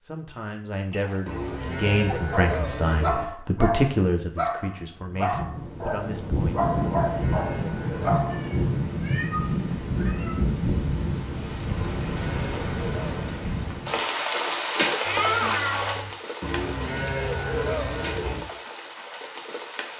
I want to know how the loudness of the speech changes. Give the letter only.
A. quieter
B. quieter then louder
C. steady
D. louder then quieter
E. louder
D.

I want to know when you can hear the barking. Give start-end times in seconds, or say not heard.
2.3-8.5.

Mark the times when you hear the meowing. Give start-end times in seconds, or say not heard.
0.9-2.1, 8.2-10.4, 15.1-16.1.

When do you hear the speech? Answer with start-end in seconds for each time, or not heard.
0.1-6.7.